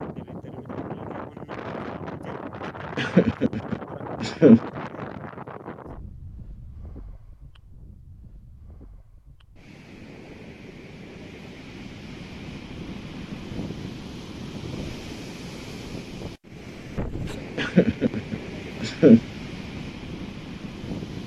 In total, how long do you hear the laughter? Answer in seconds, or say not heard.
3 s.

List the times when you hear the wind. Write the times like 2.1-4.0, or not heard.
0.0-21.2.